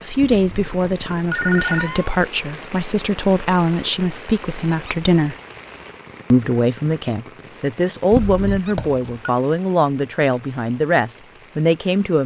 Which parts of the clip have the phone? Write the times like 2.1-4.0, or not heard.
0.1-2.0, 8.1-9.3.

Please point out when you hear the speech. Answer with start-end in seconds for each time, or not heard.
0.0-5.3, 6.3-12.2.